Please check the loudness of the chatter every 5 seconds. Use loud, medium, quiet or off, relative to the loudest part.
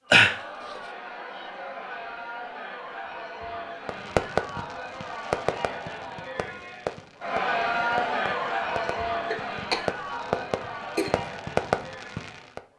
medium, loud, medium.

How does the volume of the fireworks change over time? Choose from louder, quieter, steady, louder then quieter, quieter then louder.
quieter then louder.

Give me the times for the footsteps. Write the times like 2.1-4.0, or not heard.
not heard.